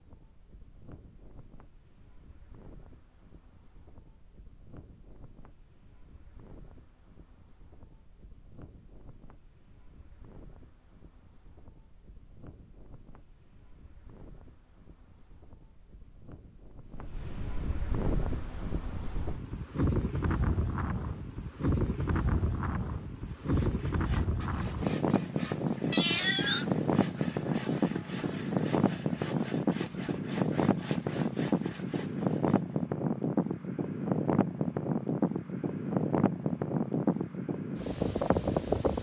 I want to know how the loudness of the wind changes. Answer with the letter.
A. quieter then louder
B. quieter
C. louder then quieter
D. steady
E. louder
E.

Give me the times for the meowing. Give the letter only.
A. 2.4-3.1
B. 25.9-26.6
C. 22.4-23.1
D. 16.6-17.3
B.